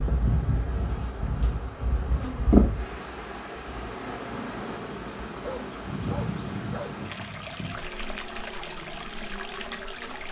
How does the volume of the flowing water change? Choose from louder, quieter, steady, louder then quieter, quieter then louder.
louder.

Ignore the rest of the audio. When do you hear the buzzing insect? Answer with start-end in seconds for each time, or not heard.
0.0-10.2.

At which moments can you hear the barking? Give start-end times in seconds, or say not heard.
5.4-7.0.